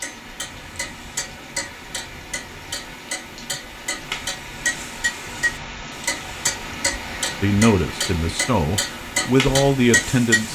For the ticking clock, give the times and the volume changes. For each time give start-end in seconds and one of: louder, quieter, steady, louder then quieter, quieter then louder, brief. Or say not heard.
0.0-10.5 louder.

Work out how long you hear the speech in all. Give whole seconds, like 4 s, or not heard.
3 s.